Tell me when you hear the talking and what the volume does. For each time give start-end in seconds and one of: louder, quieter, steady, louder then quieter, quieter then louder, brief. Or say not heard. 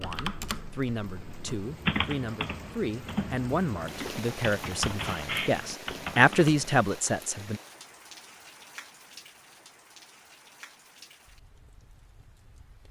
0.0-7.6 louder.